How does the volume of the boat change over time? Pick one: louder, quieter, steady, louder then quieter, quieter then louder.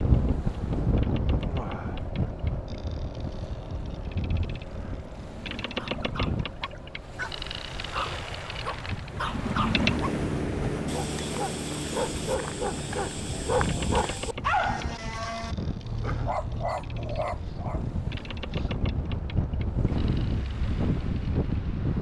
louder then quieter.